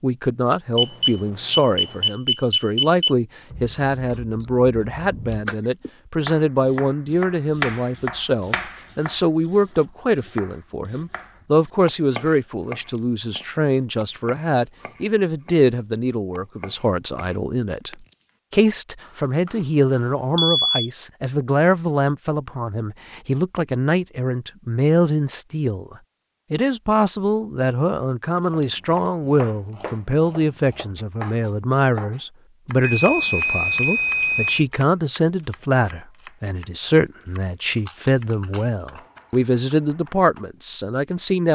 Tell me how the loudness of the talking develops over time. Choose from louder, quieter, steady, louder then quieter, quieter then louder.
steady.